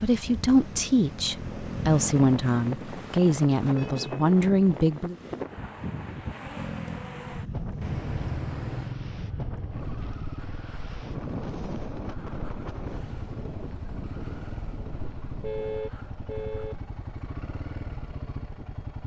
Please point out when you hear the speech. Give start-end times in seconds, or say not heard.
0.0-5.2.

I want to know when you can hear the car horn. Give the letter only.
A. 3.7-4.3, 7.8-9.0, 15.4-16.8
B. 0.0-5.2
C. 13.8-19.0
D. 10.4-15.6
A.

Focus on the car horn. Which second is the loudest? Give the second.
16 s.